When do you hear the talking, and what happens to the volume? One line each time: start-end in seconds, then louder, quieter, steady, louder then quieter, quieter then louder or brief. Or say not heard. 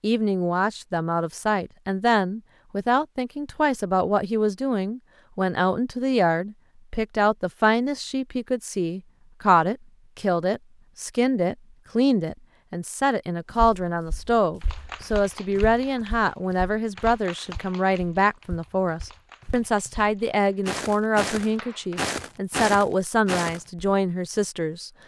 0.0-24.9 steady.